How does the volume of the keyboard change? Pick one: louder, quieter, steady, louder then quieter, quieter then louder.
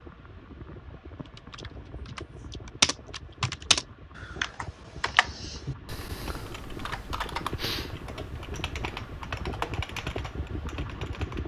quieter.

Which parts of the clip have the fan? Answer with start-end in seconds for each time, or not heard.
0.0-11.4.